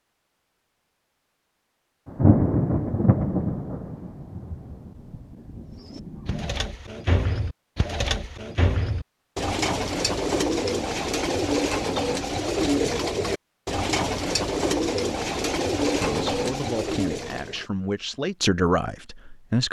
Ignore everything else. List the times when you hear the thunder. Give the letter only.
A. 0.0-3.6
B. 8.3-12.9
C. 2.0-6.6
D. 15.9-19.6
C.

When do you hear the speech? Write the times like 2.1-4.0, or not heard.
15.9-19.6.